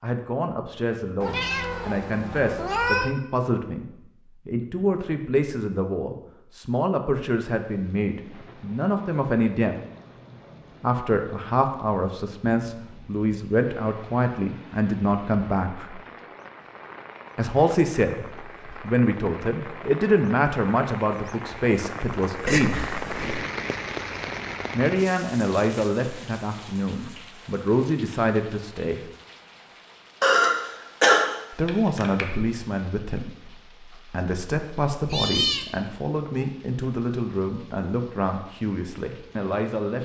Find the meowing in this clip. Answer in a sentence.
The meowing can be heard from 1.2 to 3.1 s, from 22.4 to 23.3 s and from 35.0 to 35.6 s.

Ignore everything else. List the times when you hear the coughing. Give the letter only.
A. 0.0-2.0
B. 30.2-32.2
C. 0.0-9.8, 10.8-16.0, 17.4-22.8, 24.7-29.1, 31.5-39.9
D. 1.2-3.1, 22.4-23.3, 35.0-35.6
B.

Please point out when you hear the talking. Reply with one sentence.
You can hear the talking from 0.0 to 9.8 s, from 10.8 to 16.0 s, from 17.4 to 22.8 s, from 24.7 to 29.1 s and from 31.5 to 39.9 s.